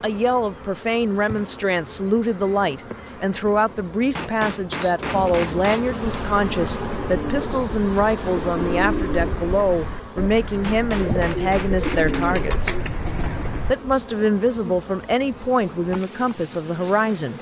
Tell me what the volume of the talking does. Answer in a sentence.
The loudness of the talking stays about the same.